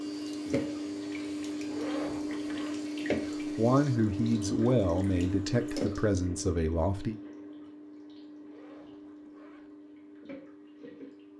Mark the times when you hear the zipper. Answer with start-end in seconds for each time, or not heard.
1.6-2.8, 8.4-9.7.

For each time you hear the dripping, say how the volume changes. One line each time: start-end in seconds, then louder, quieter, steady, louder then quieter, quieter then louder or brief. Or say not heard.
0.0-11.3 quieter.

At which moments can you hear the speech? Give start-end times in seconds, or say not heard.
3.5-7.2.